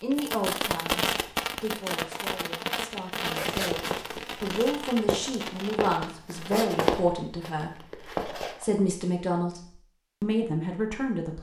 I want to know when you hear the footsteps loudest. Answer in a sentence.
The loudest moment of the footsteps is at 7 seconds.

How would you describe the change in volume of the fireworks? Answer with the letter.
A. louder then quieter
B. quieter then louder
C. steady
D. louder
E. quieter
E.